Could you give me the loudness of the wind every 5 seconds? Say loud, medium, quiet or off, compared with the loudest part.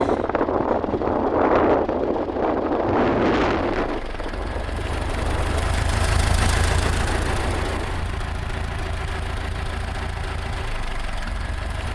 loud, medium, off.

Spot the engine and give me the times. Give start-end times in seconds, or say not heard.
0.0-11.9.